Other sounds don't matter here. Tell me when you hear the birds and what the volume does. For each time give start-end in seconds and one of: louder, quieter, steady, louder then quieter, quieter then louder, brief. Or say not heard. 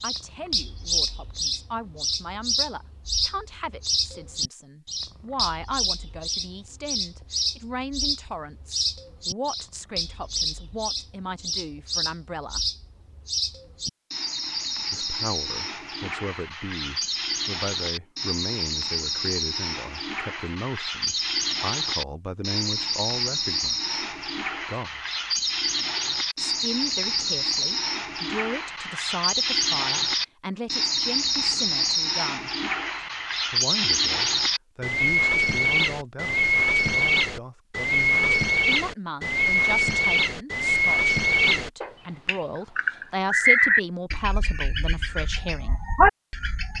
0.0-46.7 louder.